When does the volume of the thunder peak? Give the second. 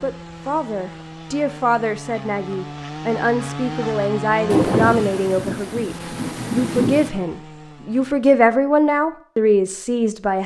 5 s.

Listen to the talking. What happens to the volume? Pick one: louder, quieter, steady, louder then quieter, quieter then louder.
louder.